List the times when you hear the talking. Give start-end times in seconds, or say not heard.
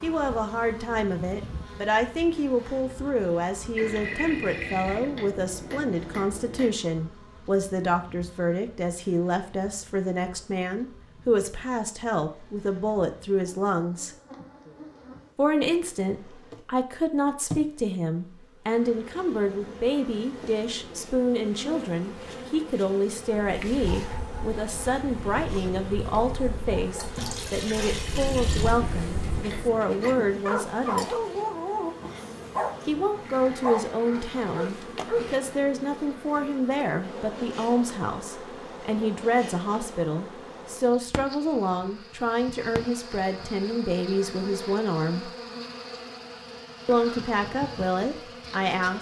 0.0-14.1, 15.3-31.1, 32.9-45.3, 46.9-48.9.